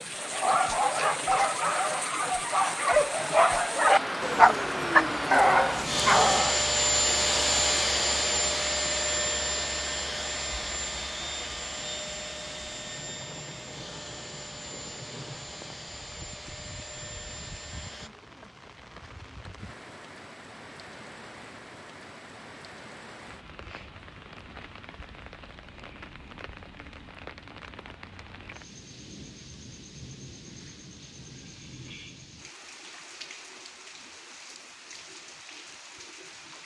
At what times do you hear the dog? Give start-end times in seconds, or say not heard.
0.1-6.6.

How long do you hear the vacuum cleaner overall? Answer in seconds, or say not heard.
14 s.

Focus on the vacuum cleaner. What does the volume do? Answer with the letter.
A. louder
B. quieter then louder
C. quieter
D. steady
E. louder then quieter
C.